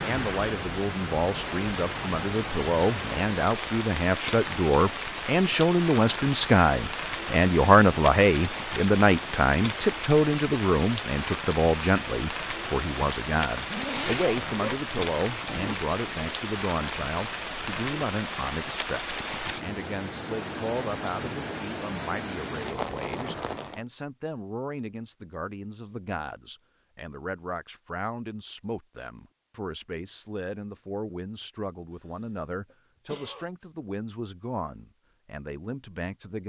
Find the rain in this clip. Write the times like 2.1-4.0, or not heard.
0.0-23.9.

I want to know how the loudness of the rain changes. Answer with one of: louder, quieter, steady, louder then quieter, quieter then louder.
steady.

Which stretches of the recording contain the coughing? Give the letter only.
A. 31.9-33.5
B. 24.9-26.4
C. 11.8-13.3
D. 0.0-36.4
A.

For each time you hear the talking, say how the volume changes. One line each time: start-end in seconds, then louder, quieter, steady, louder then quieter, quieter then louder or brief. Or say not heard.
0.0-36.4 quieter.